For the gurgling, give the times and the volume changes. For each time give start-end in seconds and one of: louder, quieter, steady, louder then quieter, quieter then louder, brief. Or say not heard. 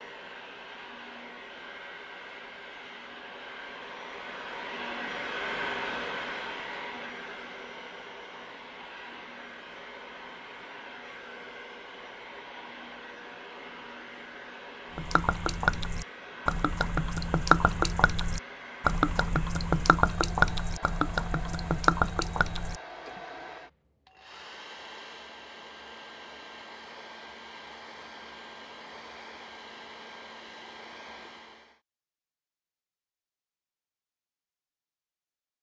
14.9-23.1 steady.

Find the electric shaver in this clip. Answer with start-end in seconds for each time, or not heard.
not heard.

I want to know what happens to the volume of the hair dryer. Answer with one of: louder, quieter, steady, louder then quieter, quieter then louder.
quieter.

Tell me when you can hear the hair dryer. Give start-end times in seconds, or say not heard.
0.0-31.8.